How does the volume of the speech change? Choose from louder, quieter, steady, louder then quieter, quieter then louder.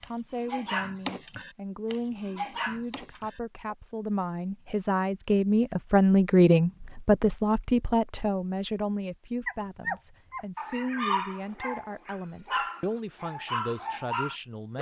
louder then quieter.